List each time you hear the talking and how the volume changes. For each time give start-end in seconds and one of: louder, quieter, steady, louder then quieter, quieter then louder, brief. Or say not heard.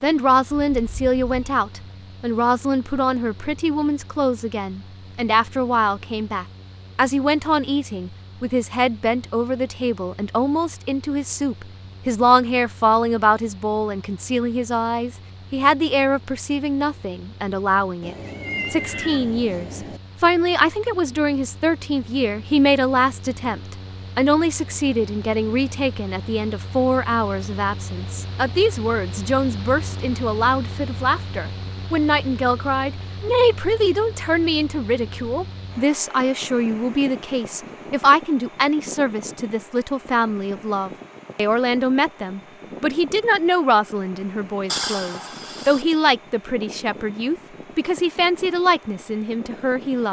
0.0-50.0 steady.